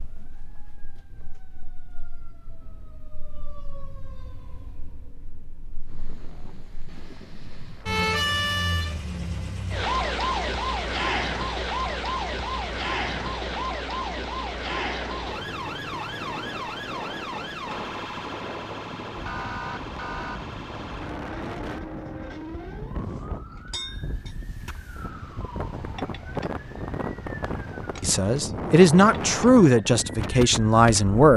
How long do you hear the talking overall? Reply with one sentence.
The talking can be heard for 3 seconds in total.